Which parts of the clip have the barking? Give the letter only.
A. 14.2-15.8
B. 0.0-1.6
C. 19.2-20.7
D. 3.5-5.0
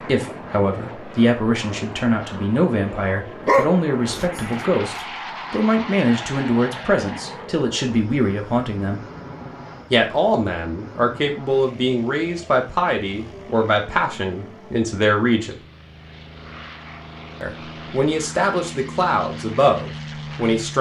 D.